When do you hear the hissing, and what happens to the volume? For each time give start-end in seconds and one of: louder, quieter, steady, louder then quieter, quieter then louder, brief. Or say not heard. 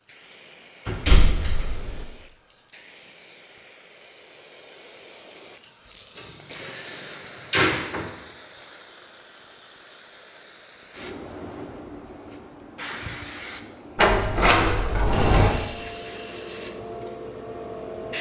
0.0-18.1 louder.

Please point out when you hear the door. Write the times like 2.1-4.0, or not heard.
0.8-2.0, 6.2-8.1, 13.9-15.6.